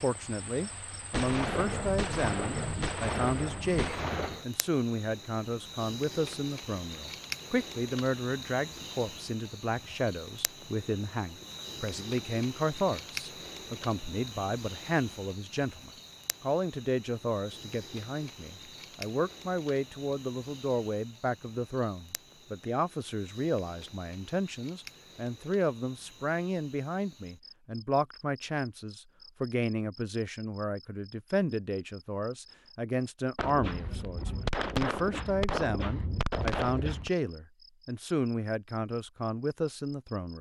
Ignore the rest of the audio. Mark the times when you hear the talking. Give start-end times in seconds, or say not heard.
0.0-40.3.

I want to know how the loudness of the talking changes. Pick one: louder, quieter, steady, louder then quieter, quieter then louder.
steady.